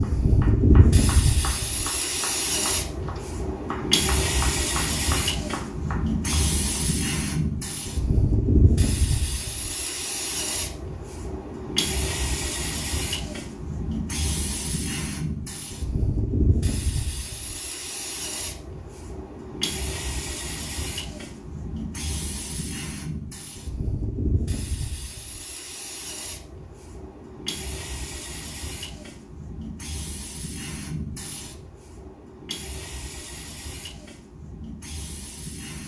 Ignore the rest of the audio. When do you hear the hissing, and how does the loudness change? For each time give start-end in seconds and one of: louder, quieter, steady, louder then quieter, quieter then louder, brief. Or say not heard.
0.0-35.8 quieter.